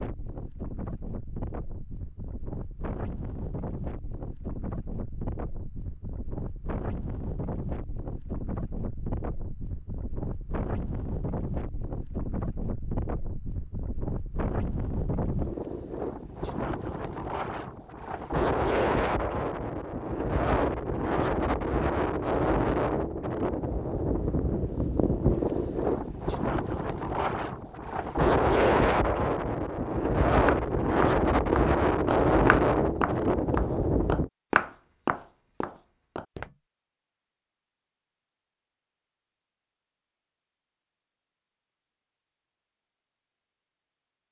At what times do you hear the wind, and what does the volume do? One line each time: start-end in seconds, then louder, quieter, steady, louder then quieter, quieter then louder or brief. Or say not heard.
0.0-34.3 louder.